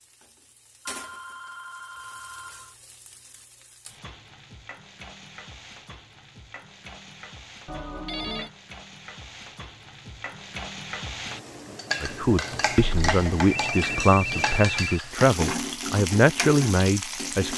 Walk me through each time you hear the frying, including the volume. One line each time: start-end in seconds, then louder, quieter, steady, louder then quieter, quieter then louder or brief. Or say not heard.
0.0-17.5 louder.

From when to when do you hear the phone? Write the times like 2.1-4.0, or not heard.
0.8-2.8, 7.7-8.5, 12.6-15.0.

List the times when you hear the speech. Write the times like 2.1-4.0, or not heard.
12.0-17.5.